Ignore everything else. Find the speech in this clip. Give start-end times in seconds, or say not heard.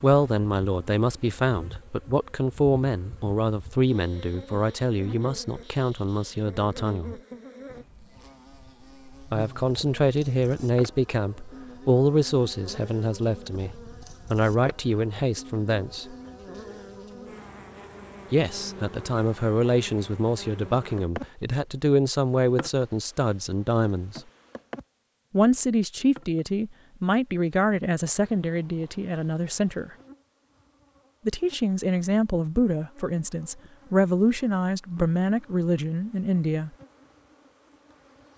0.0-7.2, 9.3-16.1, 18.3-24.2, 25.3-29.9, 31.2-36.7.